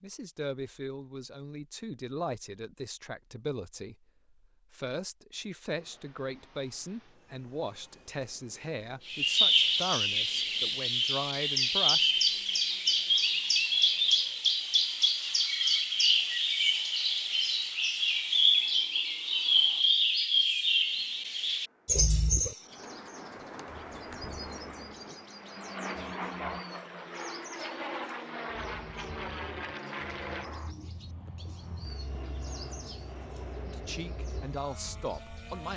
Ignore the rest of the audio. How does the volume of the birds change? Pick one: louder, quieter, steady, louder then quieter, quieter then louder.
quieter.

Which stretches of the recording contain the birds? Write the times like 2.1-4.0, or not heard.
9.1-35.6.